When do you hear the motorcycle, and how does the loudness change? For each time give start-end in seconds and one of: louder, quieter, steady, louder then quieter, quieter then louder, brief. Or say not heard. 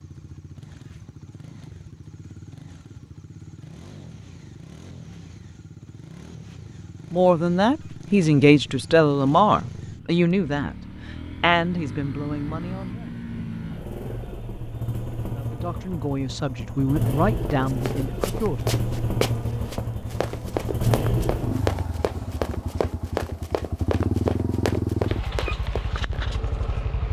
0.0-27.0 louder.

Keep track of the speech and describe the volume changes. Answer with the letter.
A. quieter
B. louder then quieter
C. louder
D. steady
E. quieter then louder
A.